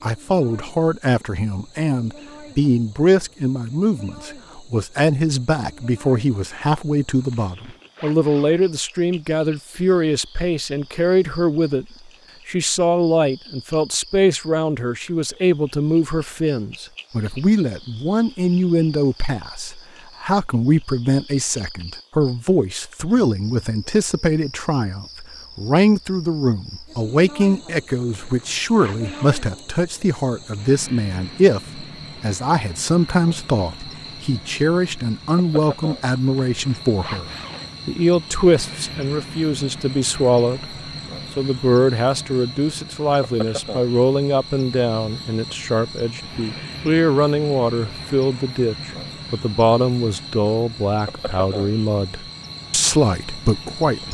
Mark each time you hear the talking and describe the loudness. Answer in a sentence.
You can hear the talking from 0.0 to 11.8 s, at a steady volume; and from 12.4 to 54.0 s, at a steady volume.